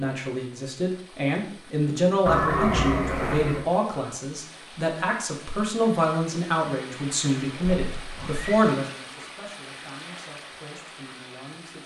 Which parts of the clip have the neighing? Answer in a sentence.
You can hear the neighing from 2.2 to 3.6 s and from 7.6 to 8.6 s.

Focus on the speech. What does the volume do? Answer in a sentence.
The volume of the speech goes down.